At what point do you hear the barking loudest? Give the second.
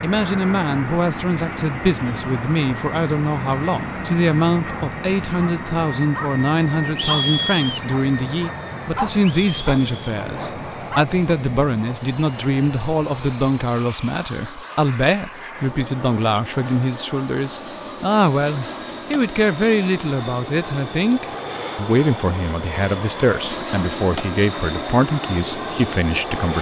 7 s.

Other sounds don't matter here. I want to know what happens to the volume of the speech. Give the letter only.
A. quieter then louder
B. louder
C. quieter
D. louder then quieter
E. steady
E.